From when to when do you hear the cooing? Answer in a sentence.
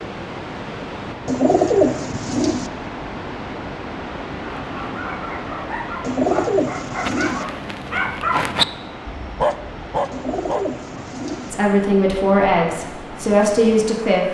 The cooing can be heard from 1.2 to 2.7 s, from 6.0 to 7.5 s and from 10.1 to 11.5 s.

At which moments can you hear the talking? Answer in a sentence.
You can hear the talking from 11.5 to 14.2 s.